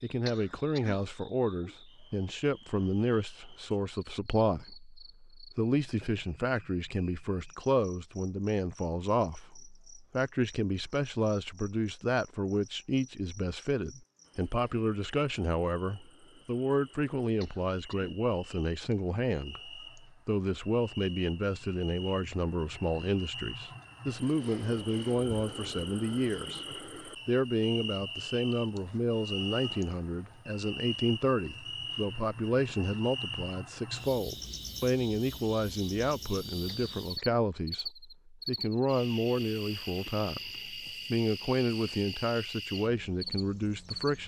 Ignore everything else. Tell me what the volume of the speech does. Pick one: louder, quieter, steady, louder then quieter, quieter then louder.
steady.